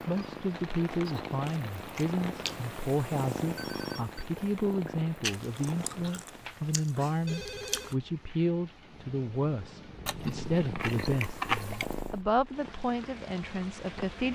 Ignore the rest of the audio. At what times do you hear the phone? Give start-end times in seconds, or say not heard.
3.5-4.2, 7.2-8.0.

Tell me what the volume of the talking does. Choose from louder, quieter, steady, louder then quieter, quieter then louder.
steady.